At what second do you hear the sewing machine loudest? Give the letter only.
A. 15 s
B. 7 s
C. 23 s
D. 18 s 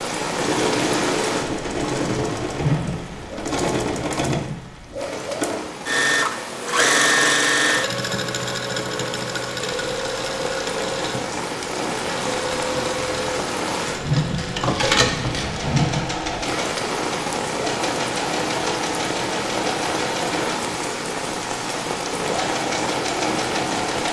B.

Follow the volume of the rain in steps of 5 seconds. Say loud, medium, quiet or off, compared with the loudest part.
loud, medium, loud, loud, loud.